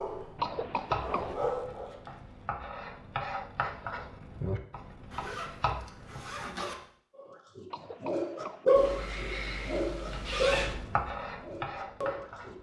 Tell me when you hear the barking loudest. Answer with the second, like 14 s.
9 s.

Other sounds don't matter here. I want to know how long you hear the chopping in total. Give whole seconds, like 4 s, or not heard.
9 s.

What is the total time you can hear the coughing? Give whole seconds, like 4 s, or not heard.
2 s.